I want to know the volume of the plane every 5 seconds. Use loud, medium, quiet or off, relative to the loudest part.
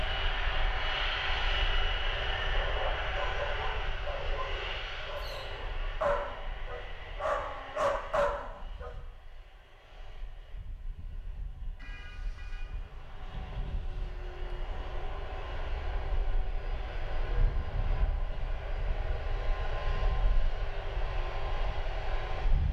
loud, quiet, quiet, medium, medium.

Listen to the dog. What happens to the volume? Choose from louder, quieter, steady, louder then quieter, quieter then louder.
louder.